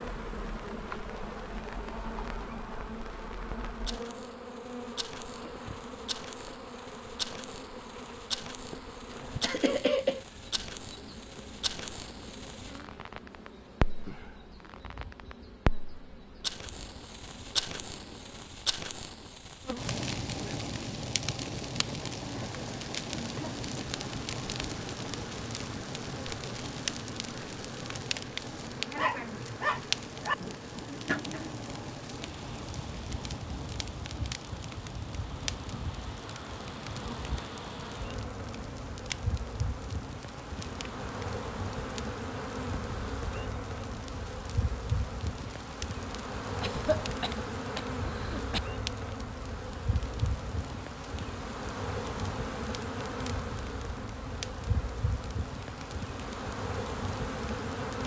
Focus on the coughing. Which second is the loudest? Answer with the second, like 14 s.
10 s.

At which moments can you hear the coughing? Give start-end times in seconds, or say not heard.
9.4-10.2, 46.6-48.6.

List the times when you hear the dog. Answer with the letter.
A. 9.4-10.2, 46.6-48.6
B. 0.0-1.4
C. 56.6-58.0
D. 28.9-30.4
D.